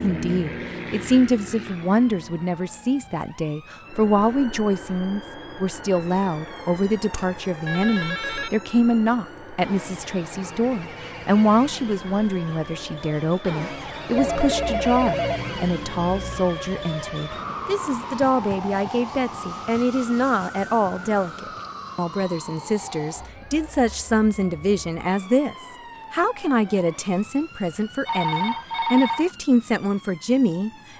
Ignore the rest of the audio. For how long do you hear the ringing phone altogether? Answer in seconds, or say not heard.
5 s.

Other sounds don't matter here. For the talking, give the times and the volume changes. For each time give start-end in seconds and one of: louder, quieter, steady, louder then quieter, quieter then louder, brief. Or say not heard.
0.0-30.7 steady.